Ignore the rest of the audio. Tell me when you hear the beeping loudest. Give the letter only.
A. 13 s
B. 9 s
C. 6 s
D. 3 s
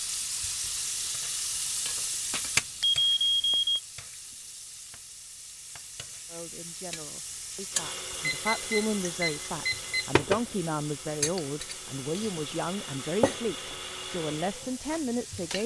D.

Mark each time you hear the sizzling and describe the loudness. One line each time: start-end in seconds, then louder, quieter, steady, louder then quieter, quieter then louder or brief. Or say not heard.
0.0-15.6 quieter then louder.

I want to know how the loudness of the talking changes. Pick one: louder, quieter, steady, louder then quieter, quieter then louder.
louder.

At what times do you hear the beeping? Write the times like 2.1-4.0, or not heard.
2.3-3.8, 8.2-9.9.